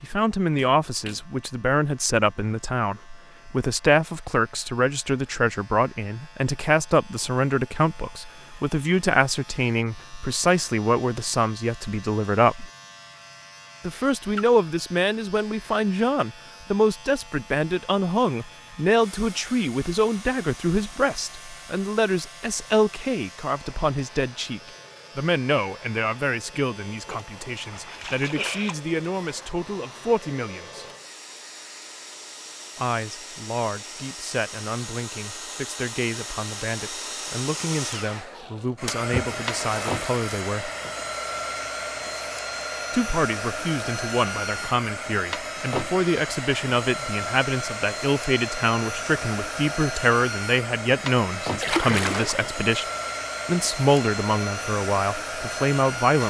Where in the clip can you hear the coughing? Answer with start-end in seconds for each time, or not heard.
not heard.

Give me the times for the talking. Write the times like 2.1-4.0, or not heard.
0.0-12.7, 13.8-30.9, 32.8-40.7, 42.9-52.9, 53.5-56.2.